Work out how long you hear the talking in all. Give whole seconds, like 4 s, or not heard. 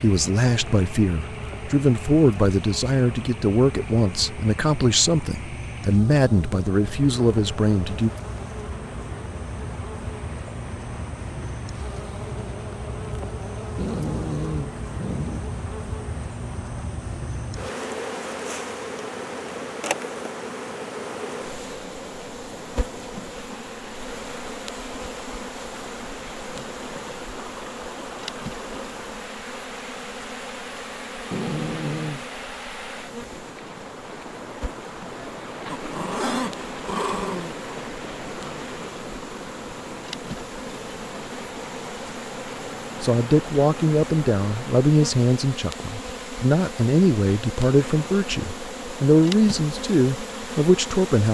16 s.